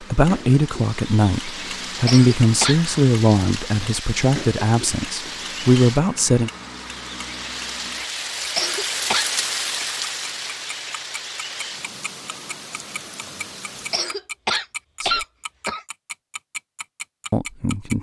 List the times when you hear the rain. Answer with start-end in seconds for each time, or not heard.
0.0-14.1.